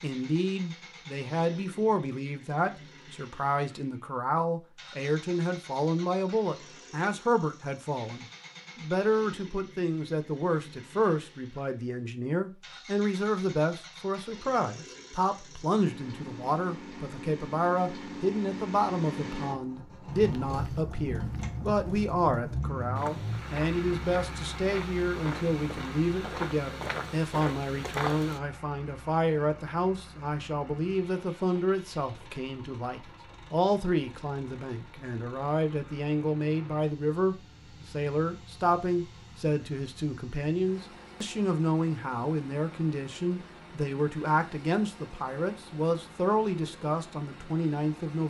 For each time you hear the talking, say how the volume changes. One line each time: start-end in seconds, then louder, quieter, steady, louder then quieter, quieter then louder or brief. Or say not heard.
0.0-48.2 steady.